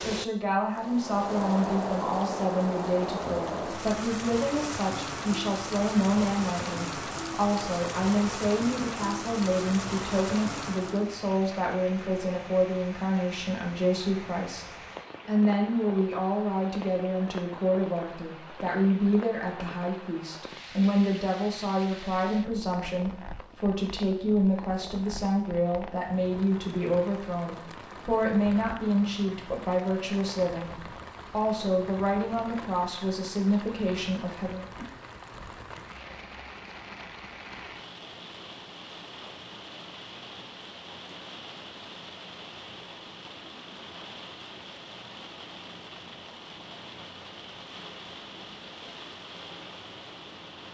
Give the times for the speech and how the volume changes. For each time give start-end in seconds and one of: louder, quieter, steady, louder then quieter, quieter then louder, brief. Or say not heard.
0.0-34.6 steady.